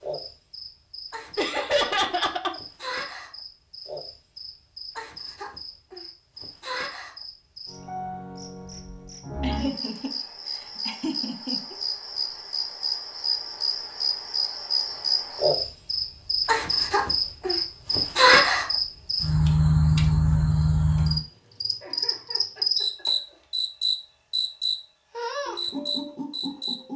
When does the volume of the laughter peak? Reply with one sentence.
The volume of the laughter peaks at 2 seconds.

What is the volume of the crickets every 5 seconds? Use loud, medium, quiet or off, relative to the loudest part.
quiet, quiet, medium, loud, loud, medium.